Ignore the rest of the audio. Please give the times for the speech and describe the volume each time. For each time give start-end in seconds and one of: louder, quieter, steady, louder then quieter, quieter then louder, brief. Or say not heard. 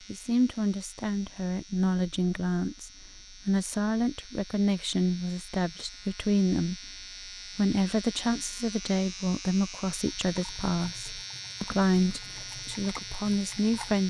0.1-14.0 steady.